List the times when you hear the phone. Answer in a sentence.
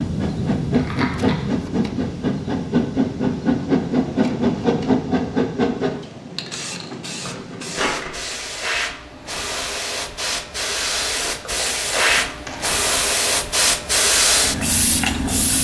The phone can't be heard in this clip.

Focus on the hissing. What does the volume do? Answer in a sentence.
The volume of the hissing goes down, then up.